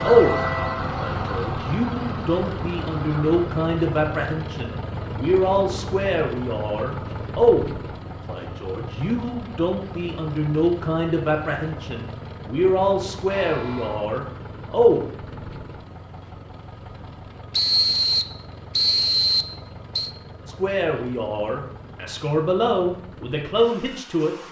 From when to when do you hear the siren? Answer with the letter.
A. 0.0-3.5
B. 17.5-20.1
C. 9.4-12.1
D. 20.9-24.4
A.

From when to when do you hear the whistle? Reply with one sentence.
The whistle can be heard from 17.5 to 20.1 s.